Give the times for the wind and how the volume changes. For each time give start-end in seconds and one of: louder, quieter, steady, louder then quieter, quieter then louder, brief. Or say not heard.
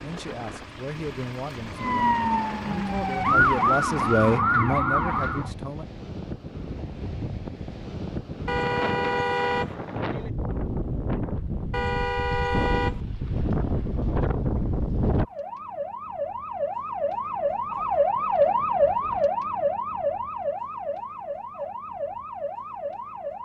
0.0-15.2 louder.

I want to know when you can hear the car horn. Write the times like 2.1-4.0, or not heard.
8.4-9.8, 11.7-13.0.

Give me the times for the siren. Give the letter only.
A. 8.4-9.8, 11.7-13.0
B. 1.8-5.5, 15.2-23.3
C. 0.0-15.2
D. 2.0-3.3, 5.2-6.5
B.